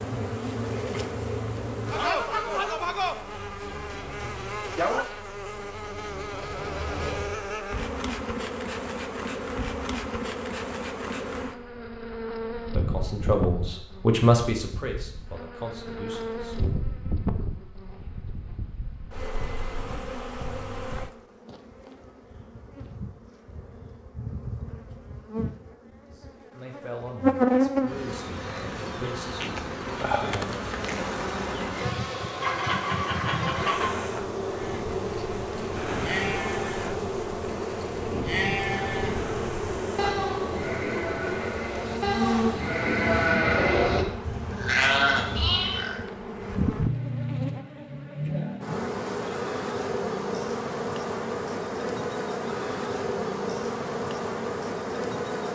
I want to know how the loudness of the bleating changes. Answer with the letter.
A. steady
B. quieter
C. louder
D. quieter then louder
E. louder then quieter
C.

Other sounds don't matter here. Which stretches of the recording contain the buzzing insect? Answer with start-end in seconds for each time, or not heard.
0.0-55.5.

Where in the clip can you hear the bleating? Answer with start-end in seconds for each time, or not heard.
34.5-46.0.